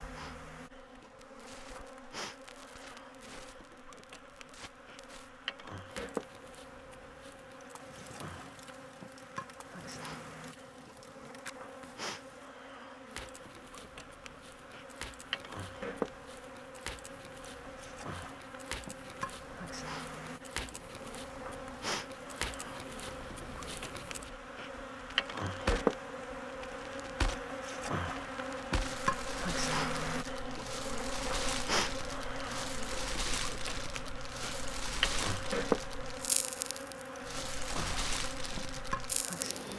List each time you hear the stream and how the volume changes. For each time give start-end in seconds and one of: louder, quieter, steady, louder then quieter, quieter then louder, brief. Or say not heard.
not heard.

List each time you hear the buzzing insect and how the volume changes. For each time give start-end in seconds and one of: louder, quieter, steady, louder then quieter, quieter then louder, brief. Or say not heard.
0.0-39.7 louder.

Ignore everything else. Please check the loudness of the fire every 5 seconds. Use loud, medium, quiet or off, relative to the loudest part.
quiet, quiet, quiet, medium, medium, loud, loud, loud.